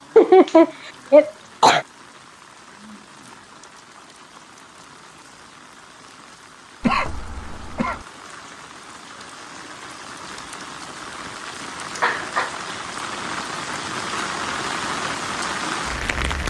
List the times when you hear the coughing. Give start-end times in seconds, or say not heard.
0.1-1.9, 6.8-8.0, 12.0-12.6.